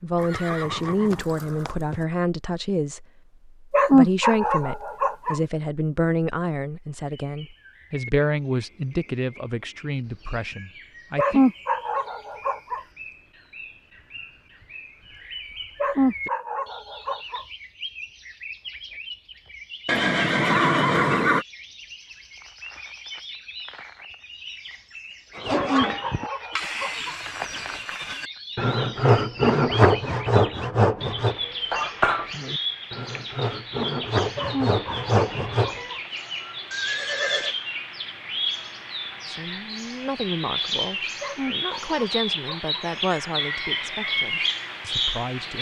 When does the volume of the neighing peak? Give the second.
21 s.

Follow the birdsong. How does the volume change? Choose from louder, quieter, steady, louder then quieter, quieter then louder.
louder.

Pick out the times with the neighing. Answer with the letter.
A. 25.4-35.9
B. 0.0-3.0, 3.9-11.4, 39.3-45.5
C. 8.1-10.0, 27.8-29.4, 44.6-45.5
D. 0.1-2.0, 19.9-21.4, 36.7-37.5
D.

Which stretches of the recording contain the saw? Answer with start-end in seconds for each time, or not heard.
25.4-35.9.